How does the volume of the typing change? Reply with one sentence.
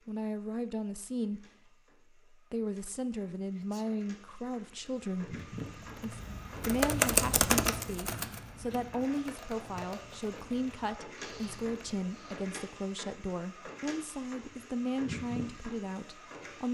The loudness of the typing goes down.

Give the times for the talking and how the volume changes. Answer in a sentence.
The talking can be heard briefly from 0.1 to 1.4 s; and from 2.3 to 16.6 s, at a steady volume.